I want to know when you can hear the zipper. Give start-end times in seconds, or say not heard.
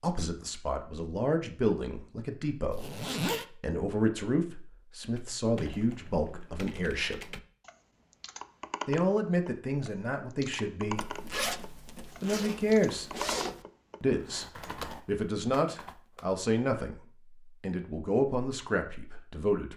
2.7-3.5, 10.9-13.7.